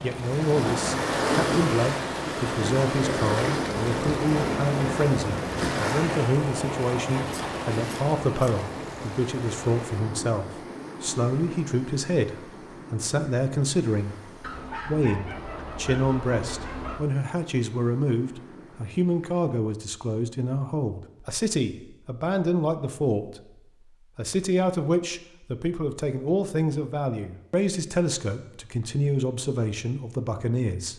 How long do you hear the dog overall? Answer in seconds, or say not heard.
3 s.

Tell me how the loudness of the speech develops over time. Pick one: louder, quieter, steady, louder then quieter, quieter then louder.
steady.